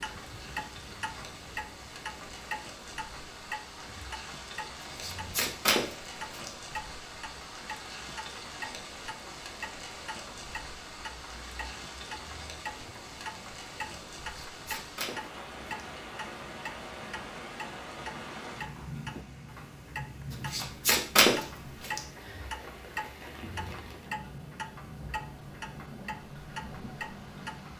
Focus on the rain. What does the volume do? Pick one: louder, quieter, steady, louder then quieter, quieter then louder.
steady.